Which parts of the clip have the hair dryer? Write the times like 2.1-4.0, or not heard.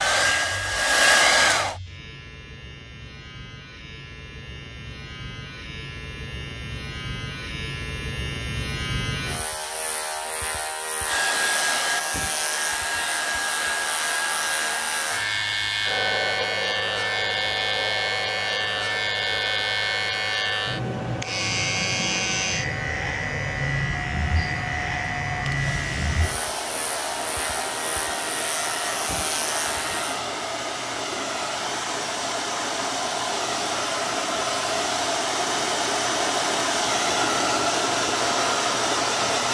0.0-1.8, 11.1-39.4.